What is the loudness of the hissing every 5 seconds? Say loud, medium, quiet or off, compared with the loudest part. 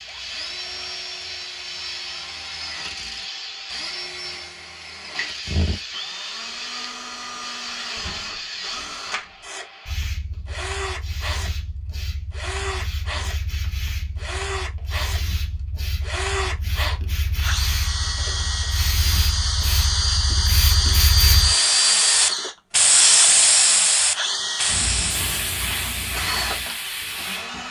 quiet, quiet, quiet, quiet, loud, medium.